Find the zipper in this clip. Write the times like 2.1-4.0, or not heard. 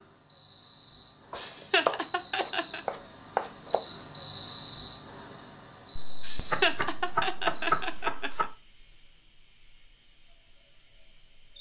not heard.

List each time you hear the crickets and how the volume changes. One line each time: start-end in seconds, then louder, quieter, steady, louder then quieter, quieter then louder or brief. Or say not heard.
0.0-11.5 louder then quieter.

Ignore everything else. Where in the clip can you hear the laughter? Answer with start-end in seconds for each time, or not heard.
1.4-2.8, 6.2-8.4.